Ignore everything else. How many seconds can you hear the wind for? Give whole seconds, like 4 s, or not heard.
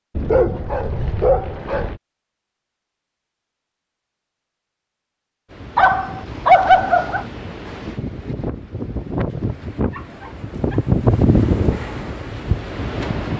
8 s.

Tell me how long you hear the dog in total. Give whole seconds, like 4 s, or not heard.
4 s.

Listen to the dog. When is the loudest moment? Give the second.
7 s.